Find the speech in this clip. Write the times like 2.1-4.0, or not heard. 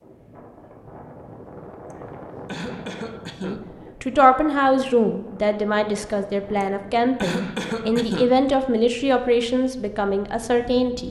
3.4-11.0.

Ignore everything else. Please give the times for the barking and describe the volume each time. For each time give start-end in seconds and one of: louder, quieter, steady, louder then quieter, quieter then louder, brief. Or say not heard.
not heard.